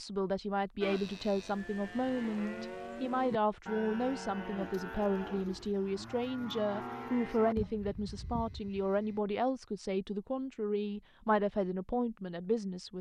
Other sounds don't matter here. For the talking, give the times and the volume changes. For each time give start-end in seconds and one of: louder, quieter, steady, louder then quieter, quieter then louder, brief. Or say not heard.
0.0-12.9 steady.